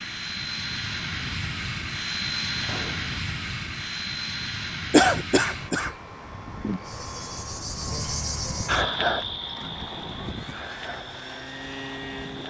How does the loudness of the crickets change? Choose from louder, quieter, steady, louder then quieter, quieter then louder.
louder then quieter.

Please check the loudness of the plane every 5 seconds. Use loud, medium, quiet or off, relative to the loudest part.
loud, medium, medium.